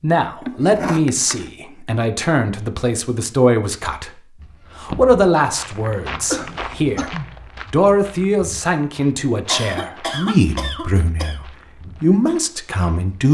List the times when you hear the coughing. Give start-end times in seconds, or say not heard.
0.4-1.5, 6.3-7.3, 9.4-11.4.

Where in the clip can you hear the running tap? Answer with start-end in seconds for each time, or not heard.
not heard.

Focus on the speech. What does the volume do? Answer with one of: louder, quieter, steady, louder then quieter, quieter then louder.
steady.